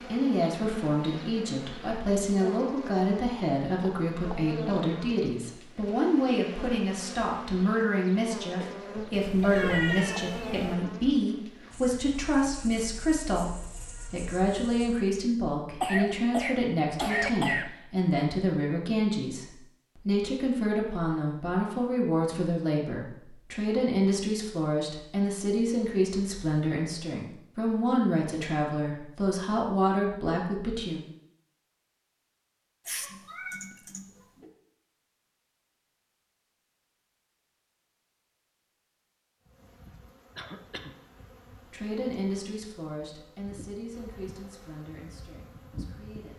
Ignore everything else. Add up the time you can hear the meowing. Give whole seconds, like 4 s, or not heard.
3 s.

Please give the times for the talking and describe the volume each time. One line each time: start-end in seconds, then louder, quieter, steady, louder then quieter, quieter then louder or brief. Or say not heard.
0.1-31.1 steady
41.7-46.3 quieter.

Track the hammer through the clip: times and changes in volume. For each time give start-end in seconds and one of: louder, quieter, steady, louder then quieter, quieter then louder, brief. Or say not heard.
not heard.